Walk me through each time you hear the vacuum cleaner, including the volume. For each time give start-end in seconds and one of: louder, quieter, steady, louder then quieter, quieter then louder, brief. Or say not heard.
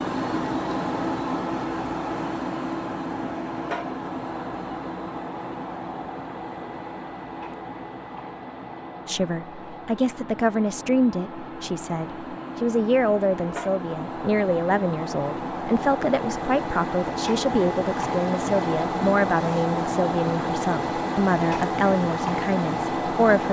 0.0-23.4 quieter then louder.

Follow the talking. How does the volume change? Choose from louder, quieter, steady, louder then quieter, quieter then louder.
steady.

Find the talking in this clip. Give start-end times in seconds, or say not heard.
9.1-23.4.